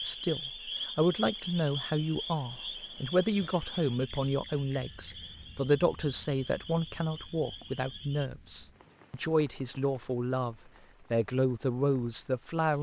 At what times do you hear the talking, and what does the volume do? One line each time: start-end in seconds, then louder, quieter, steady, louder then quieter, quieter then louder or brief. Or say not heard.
0.0-12.7 steady.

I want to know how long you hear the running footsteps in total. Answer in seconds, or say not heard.
not heard.